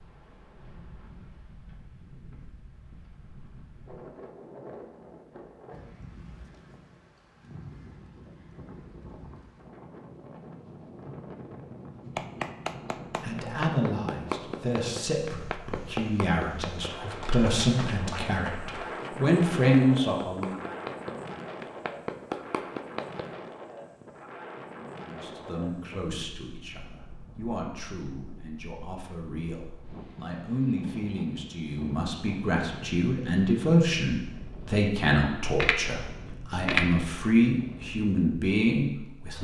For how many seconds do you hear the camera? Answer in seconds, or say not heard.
2 s.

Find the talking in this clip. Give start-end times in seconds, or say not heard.
13.2-20.6, 25.1-39.3.